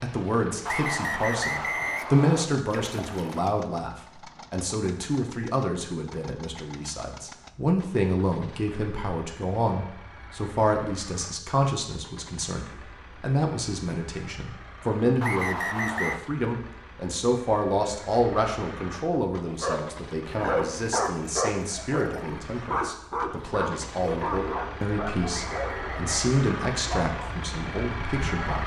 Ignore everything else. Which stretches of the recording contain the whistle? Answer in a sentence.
The whistle can be heard from 0.7 to 2.5 s, from 15.2 to 16.2 s and from 25.3 to 26.1 s.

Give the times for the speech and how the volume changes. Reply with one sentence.
The speech can be heard from 0.0 to 28.6 s, at a steady volume.